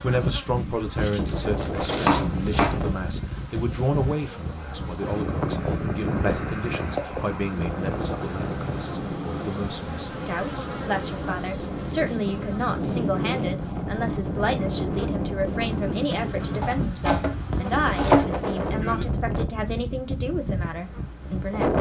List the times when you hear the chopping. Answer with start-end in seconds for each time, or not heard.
1.0-2.8, 16.6-18.2.